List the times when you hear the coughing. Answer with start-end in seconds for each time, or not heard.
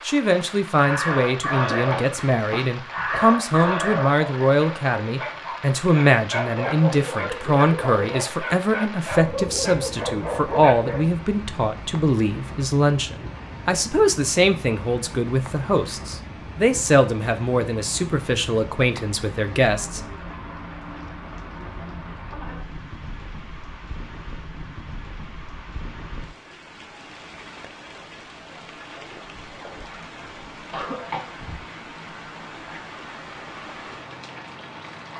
1.7-3.3, 30.7-31.3.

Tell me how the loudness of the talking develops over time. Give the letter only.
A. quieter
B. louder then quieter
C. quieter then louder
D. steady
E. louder
D.